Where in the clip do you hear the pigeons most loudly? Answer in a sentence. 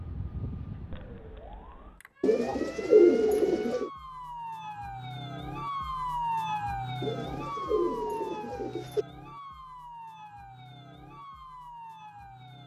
The volume of the pigeons peaks at 3 seconds.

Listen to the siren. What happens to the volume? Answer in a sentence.
The volume of the siren goes up, then down.